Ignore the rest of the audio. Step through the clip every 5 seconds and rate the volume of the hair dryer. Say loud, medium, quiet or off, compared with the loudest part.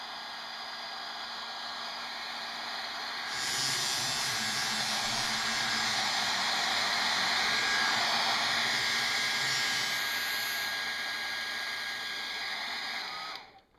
medium, loud, medium.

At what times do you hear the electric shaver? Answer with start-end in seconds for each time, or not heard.
3.2-10.8.